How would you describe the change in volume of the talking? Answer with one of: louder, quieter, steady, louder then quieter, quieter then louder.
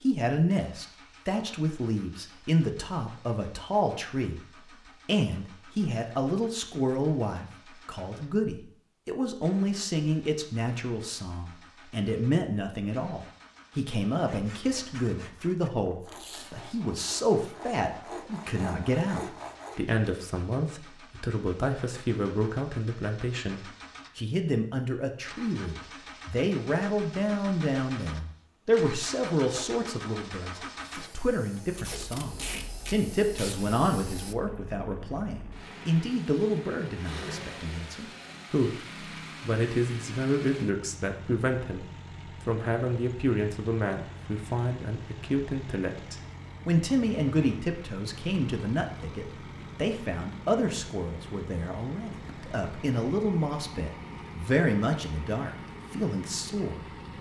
steady.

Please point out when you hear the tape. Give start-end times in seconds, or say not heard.
16.1-16.6, 31.7-33.5.